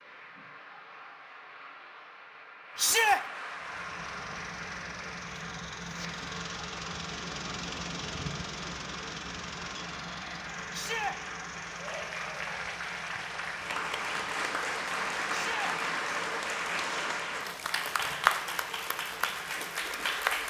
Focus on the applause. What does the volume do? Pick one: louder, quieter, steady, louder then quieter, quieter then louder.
louder.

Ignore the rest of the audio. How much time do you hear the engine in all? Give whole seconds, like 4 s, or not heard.
17 s.